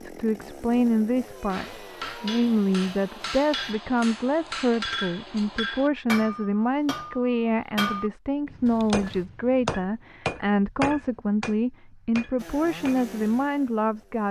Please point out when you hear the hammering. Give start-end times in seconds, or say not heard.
1.5-13.2.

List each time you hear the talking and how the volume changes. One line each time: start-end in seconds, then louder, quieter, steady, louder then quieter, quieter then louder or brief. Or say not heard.
0.0-14.2 steady.